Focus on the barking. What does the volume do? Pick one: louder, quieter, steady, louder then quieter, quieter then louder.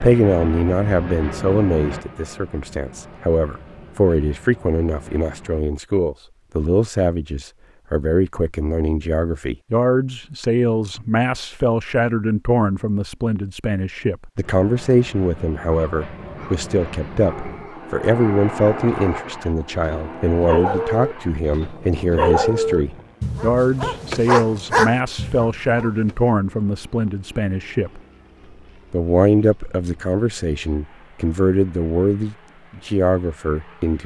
louder.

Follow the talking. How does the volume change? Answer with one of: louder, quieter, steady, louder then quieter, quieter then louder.
steady.